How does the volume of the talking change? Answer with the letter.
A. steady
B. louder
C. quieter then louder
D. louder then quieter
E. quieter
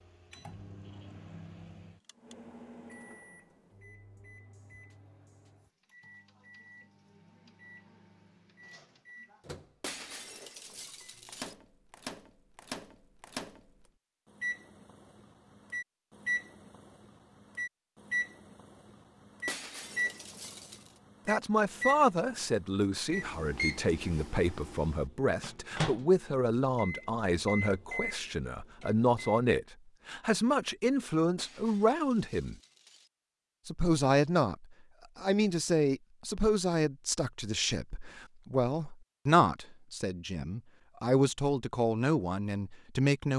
A.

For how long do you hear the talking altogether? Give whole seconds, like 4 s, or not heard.
21 s.